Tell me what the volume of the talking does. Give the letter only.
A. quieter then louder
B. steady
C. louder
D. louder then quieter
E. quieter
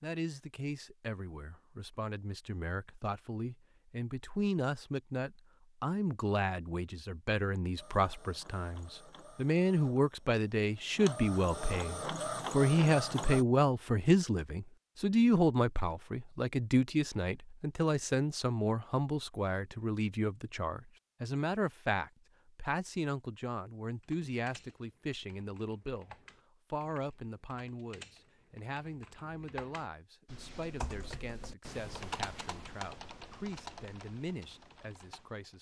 D.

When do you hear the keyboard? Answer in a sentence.
The keyboard can be heard from 24.0 to 35.5 s.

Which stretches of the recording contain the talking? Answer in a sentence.
The talking can be heard from 0.0 to 35.5 s.